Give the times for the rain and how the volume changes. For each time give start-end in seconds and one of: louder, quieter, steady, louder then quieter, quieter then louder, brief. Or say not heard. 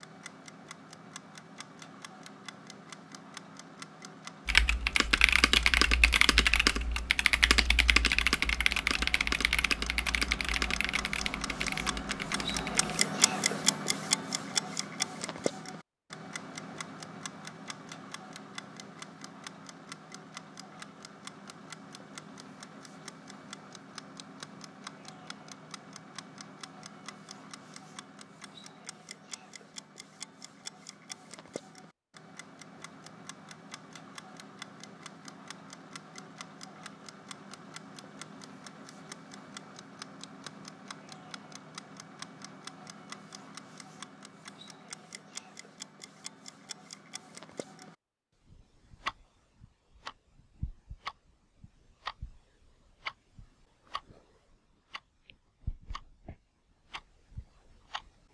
not heard.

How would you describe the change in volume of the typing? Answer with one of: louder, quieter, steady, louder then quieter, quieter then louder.
quieter.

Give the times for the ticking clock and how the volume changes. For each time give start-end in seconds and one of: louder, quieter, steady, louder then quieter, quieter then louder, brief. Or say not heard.
0.0-58.2 louder then quieter.